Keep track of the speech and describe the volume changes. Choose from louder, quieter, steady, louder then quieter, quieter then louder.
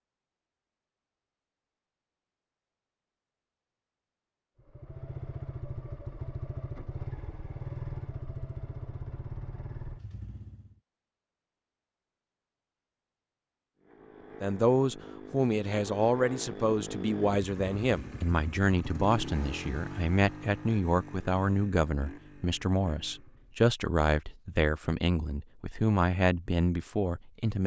steady.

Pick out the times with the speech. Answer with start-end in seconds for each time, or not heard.
14.4-27.6.